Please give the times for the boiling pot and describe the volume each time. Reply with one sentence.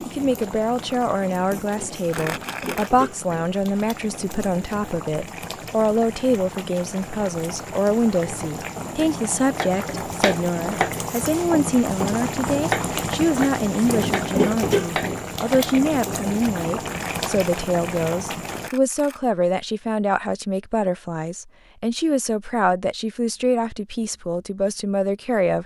The boiling pot can be heard from 0.0 to 18.7 s, getting louder.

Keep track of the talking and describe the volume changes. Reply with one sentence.
The volume of the talking stays about the same.